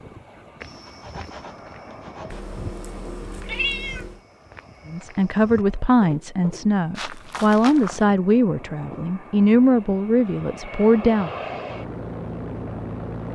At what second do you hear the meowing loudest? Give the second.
4 s.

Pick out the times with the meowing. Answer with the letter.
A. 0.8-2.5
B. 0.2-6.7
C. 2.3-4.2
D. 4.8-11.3
C.